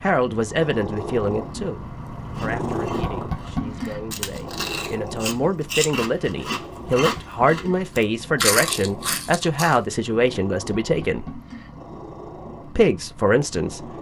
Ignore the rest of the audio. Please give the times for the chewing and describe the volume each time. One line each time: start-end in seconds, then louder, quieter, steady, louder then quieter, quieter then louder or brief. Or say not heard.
2.3-9.8 louder.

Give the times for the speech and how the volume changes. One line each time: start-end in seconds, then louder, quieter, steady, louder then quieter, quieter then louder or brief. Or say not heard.
0.0-11.4 quieter then louder
12.8-13.8 brief.